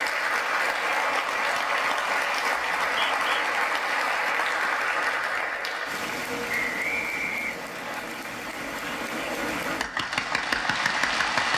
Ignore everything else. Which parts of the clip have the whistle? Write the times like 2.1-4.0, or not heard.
2.8-3.5, 6.5-8.0.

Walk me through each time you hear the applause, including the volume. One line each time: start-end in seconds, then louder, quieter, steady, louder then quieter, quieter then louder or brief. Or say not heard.
0.0-11.5 quieter then louder.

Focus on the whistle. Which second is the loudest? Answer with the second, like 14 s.
7 s.